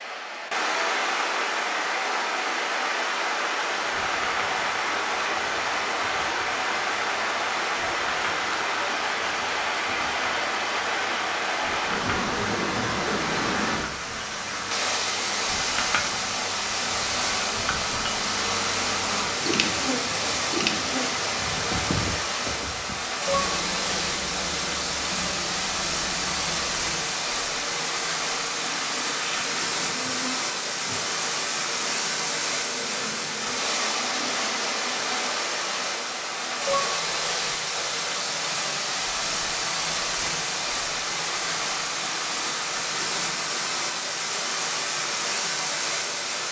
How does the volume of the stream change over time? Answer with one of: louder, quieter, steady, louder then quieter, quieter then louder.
steady.